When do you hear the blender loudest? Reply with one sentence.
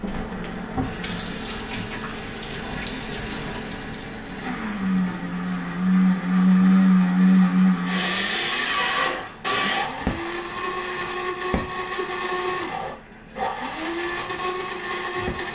The loudest moment of the blender is at 7 seconds.